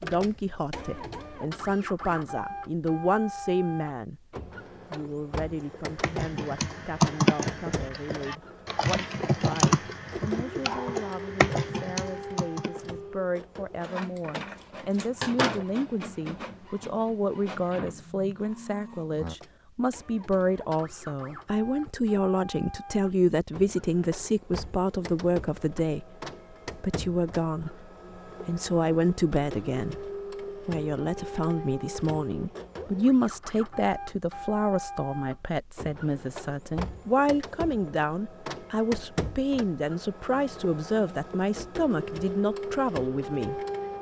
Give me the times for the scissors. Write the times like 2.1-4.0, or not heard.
14.9-15.7.